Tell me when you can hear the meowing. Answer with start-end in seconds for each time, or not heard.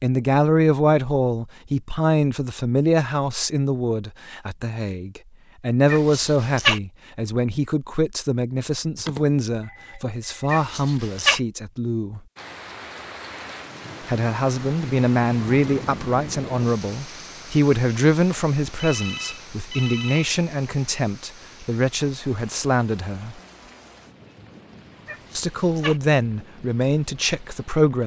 5.8-6.8, 10.5-11.4, 25.1-26.0.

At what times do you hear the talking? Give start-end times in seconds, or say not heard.
0.0-12.2, 14.1-23.4, 25.4-28.0.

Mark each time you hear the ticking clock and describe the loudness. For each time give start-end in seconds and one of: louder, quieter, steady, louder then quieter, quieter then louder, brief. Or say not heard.
not heard.